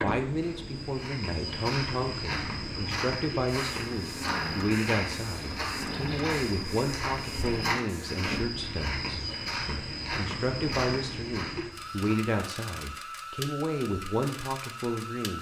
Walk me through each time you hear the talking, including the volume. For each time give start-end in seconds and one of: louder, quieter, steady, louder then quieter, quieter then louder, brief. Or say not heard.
0.0-15.3 steady.